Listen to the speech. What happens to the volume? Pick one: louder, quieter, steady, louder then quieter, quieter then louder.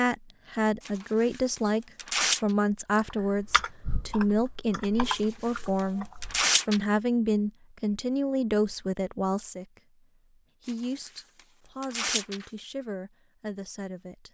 quieter.